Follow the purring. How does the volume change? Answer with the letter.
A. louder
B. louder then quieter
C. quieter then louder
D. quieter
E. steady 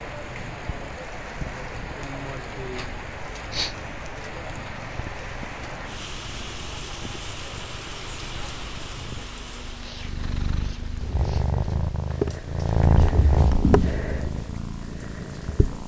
A.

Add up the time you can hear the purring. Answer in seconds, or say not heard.
16 s.